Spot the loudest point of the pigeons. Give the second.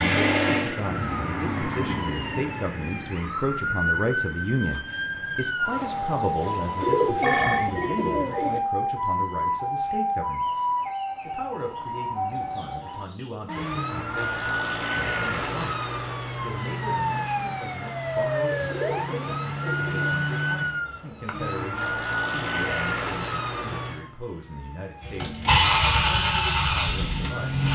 7 s.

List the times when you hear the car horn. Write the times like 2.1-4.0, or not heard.
not heard.